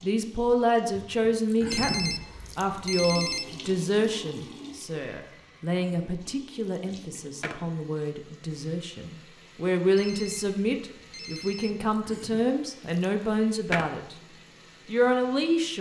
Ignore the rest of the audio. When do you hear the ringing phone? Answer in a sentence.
You can hear the ringing phone from 1.7 to 3.5 s and from 9.9 to 11.8 s.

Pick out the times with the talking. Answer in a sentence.
The talking can be heard from 0.0 to 14.2 s and from 14.8 to 15.7 s.